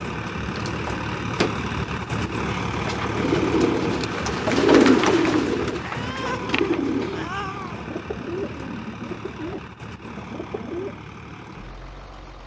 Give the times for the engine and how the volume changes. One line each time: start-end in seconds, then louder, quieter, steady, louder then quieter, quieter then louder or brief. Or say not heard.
0.0-12.4 quieter.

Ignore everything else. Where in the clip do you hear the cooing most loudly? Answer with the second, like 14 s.
5 s.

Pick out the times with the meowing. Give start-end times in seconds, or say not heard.
5.8-7.8.